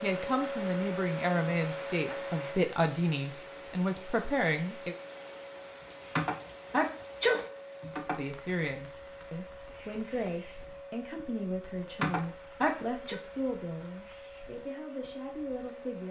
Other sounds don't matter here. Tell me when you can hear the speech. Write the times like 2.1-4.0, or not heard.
0.0-5.0, 8.2-16.0.